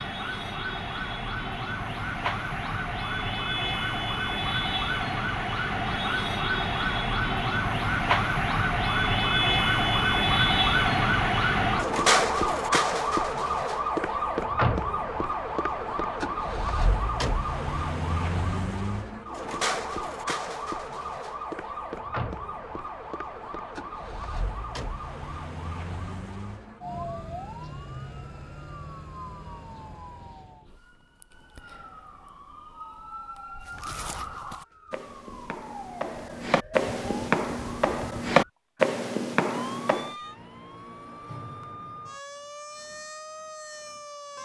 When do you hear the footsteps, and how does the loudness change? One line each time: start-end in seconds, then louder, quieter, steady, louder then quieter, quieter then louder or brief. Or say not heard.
33.8-40.1 louder.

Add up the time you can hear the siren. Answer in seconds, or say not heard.
44 s.